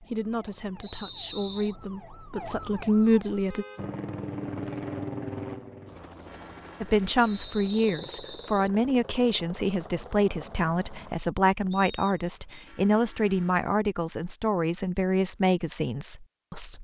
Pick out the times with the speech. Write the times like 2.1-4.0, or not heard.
0.0-3.6, 6.8-16.7.